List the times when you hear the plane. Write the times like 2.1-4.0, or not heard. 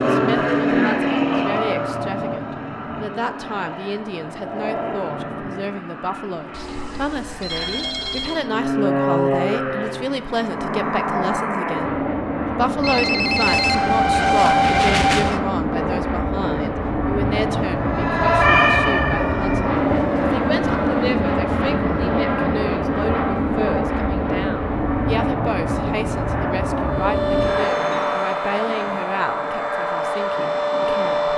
0.0-31.3.